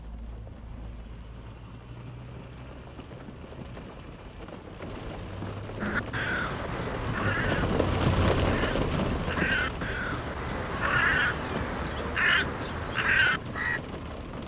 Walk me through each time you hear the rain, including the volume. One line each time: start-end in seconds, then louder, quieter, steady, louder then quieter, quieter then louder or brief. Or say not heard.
0.0-14.4 louder then quieter.